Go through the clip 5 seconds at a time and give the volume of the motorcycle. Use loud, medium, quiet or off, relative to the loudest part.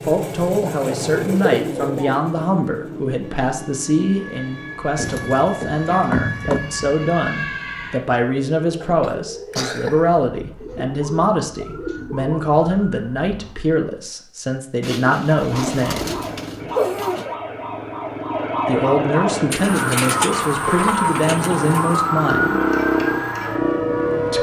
medium, off, off, medium, loud.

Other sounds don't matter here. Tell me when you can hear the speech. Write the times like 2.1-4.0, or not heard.
0.0-16.1, 18.6-22.6.